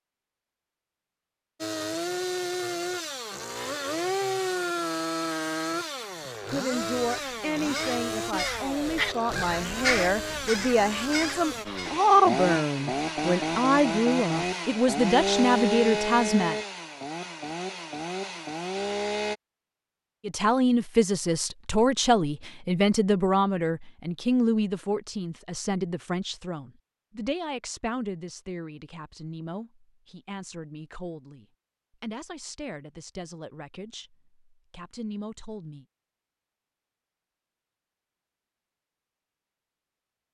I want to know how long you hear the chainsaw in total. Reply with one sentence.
The chainsaw can be heard for 18 seconds in total.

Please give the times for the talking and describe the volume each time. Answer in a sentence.
You can hear the talking from 6.5 to 16.6 s, getting louder; and from 20.2 to 35.9 s, getting quieter.